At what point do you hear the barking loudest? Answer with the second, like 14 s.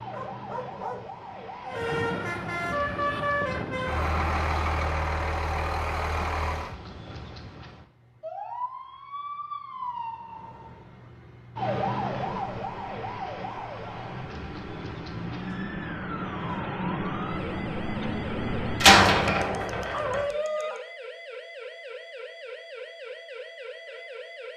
20 s.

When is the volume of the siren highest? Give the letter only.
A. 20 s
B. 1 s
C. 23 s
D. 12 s
D.